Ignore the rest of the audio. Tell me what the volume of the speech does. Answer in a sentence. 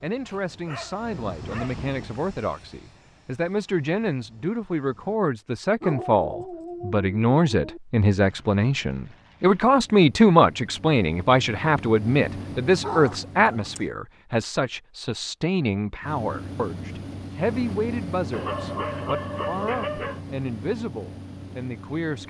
The loudness of the speech goes up, then down.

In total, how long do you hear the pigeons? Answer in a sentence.
The pigeons can't be heard in this clip.